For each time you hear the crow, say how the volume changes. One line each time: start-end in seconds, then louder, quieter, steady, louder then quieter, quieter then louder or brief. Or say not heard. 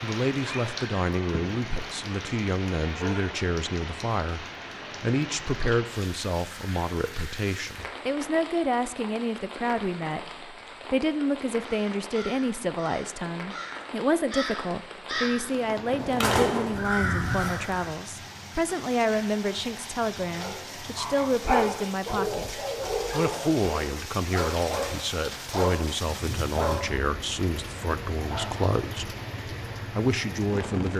11.6-17.9 louder.